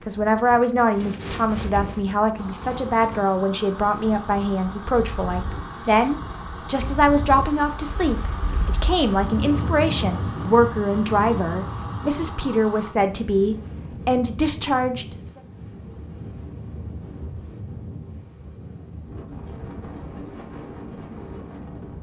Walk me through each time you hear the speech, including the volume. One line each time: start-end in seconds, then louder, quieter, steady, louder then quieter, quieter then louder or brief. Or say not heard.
0.0-15.4 steady.